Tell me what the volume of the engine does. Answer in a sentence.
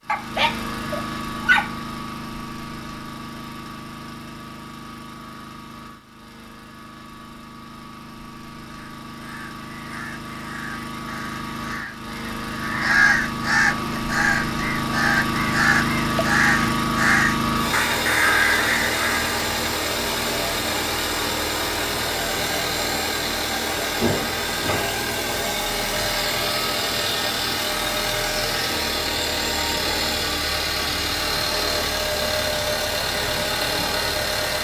The loudness of the engine goes up.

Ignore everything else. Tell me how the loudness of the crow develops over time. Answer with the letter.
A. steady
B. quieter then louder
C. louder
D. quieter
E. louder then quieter
C.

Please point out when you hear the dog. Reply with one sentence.
You can hear the dog from 0.1 to 1.8 s.